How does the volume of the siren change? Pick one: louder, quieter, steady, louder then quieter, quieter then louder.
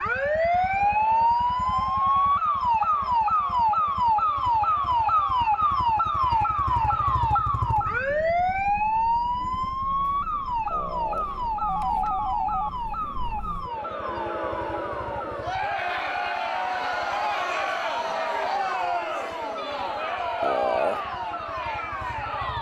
quieter.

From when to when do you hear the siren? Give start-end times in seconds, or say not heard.
0.0-22.5.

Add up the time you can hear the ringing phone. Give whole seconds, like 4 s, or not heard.
4 s.